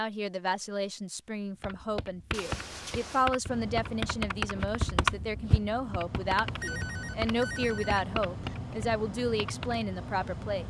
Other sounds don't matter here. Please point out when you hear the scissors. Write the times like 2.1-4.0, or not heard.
not heard.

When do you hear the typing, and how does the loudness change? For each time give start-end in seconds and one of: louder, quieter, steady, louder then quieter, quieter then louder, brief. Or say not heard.
1.6-9.8 louder then quieter.